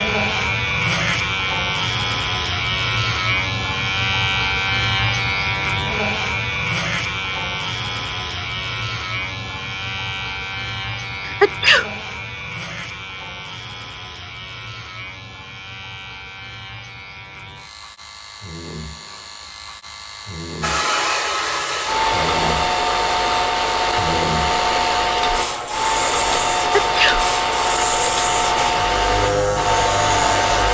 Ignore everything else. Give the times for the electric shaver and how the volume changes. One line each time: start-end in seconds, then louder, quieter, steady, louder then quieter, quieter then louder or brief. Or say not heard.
0.0-30.6 quieter then louder.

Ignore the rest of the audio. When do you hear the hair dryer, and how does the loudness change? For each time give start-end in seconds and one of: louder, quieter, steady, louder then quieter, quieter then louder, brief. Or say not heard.
20.6-30.6 steady.